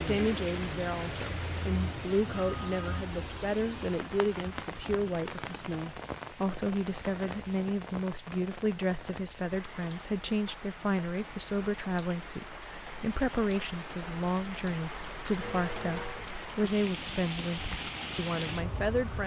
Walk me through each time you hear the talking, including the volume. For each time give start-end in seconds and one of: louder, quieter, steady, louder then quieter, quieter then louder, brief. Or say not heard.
0.0-19.2 steady.